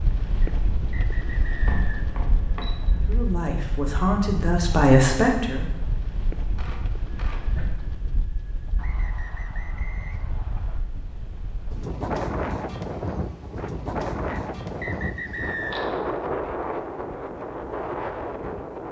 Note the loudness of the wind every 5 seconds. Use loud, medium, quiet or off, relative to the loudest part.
medium, medium, loud, loud.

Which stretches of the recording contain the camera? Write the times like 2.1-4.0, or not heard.
1.6-3.1, 6.5-7.8, 15.1-16.0.